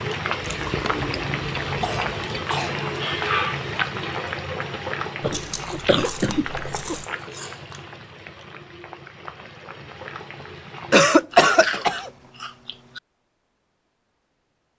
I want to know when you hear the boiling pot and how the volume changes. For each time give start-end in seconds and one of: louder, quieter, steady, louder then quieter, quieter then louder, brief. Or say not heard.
0.0-11.2 quieter.